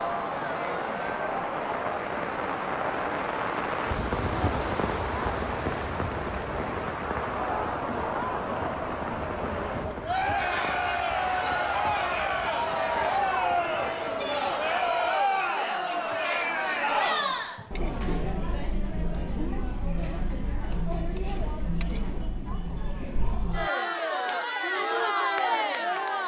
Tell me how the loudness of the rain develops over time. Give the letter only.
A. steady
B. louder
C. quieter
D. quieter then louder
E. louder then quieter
C.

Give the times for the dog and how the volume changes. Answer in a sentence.
The dog can't be heard in this clip.